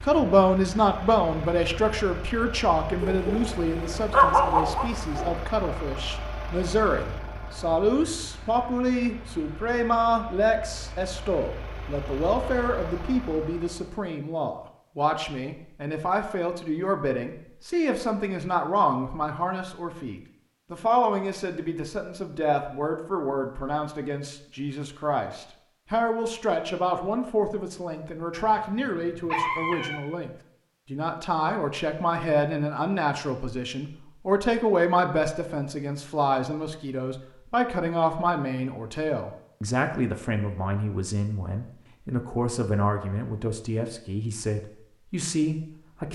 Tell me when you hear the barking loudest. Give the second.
4 s.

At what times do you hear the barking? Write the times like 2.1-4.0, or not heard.
3.0-5.3, 28.3-30.0.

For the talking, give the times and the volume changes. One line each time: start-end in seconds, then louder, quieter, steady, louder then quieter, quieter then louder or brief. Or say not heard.
0.0-46.0 steady.